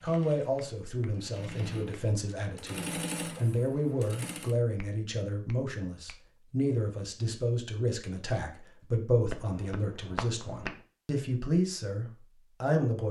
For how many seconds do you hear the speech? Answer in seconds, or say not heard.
13 s.